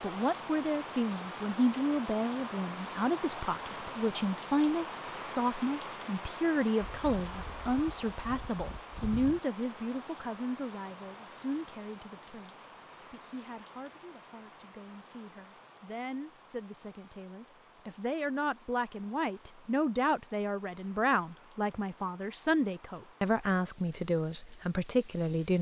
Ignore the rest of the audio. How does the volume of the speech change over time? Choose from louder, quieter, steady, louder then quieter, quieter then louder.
quieter then louder.